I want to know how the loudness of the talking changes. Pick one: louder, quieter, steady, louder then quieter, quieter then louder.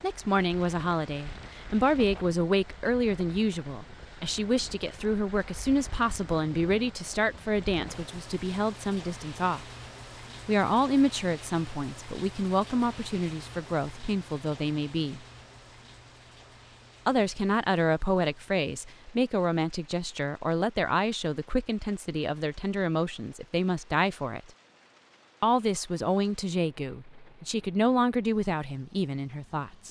steady.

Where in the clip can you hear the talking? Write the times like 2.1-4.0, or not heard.
0.0-9.7, 10.4-15.2, 17.1-24.5, 25.4-29.8.